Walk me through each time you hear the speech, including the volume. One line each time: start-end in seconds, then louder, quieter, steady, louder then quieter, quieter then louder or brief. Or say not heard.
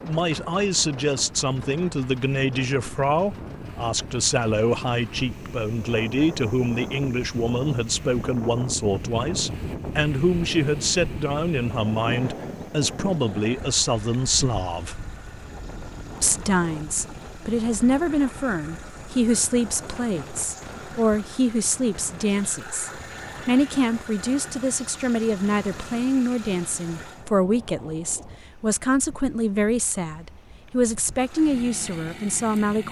0.0-15.0 steady
16.1-32.8 steady.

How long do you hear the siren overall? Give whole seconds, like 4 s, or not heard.
not heard.